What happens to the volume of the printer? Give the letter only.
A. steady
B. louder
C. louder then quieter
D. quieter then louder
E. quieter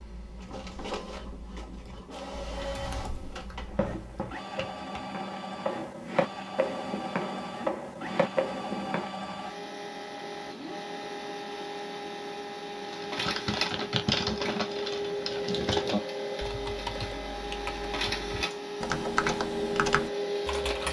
B.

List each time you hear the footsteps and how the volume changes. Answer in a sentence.
The footsteps can be heard from 3.6 to 9.1 s, getting louder.